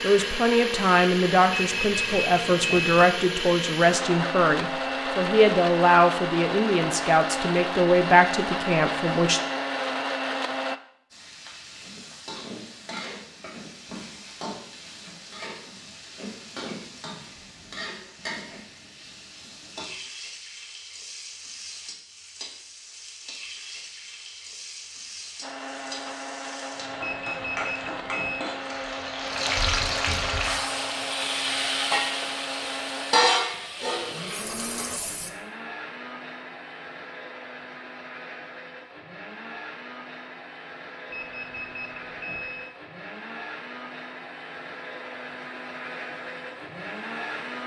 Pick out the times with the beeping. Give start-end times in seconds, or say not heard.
1.5-3.0, 27.0-28.4, 41.1-42.8.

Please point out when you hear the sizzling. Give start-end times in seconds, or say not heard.
11.1-35.3.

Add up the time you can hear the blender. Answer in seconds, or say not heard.
33 s.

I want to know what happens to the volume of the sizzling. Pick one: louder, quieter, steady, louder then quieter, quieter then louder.
louder.